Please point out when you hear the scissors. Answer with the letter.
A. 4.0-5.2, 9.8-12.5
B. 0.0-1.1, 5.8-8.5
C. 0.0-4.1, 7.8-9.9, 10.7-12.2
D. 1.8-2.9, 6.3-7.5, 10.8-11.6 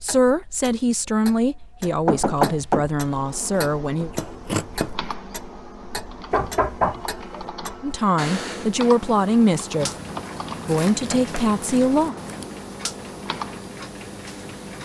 A.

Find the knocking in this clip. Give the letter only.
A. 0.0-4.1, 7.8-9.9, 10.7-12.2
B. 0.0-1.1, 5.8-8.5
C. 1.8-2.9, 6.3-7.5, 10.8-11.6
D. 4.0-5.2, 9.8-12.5
C.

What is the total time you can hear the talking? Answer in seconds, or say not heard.
8 s.